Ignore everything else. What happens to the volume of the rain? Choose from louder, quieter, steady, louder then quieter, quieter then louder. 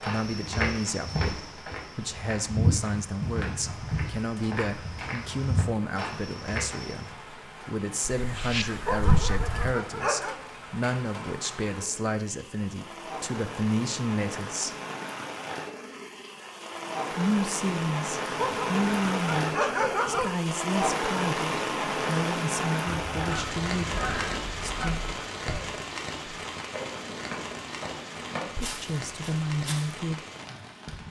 louder then quieter.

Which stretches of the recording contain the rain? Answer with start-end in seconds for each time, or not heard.
0.2-31.0.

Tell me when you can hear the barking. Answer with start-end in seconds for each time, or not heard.
8.8-10.3, 18.4-20.4.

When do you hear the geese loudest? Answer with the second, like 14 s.
9 s.